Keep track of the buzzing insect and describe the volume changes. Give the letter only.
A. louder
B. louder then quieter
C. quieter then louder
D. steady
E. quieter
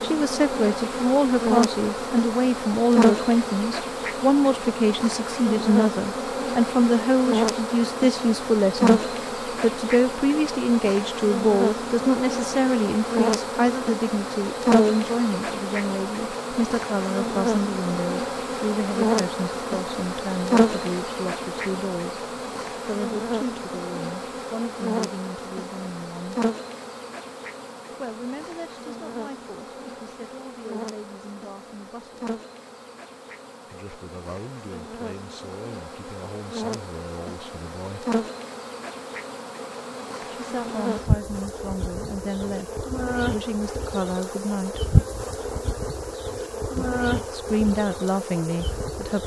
C.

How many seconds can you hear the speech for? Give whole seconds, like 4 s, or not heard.
42 s.